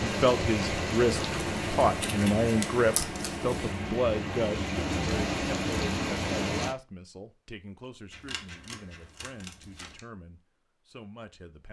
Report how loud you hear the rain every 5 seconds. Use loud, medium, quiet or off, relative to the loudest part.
loud, loud, off.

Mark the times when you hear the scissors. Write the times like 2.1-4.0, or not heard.
1.2-3.8, 8.1-10.0.